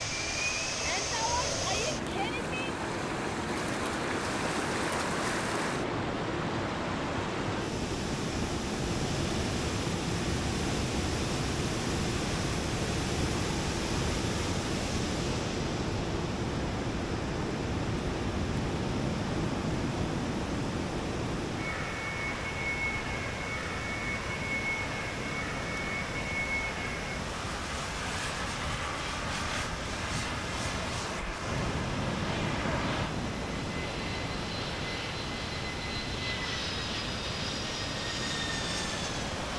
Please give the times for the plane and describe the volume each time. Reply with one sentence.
The plane can be heard from 0.0 to 39.5 s, at a steady volume.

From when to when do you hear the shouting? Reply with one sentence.
You can hear the shouting from 0.7 to 2.8 s.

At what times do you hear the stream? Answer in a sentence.
The stream can be heard from 0.0 to 39.5 s.